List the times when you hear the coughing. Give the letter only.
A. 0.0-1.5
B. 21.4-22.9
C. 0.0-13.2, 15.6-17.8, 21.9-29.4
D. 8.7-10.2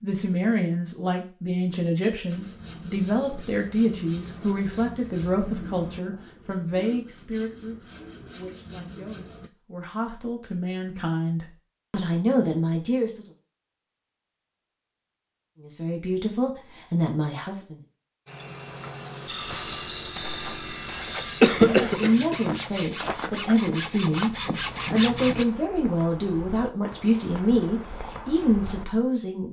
B.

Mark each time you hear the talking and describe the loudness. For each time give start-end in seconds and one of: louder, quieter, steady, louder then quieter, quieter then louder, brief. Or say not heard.
0.0-13.2 quieter then louder
15.6-17.8 brief
21.9-29.4 steady.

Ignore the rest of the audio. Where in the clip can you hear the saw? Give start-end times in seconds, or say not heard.
2.3-9.5, 18.2-25.4.